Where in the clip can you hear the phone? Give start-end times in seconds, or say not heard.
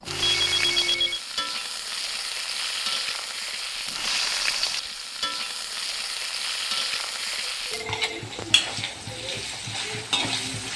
0.1-1.2, 7.7-8.2.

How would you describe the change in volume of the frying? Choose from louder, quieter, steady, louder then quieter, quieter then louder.
steady.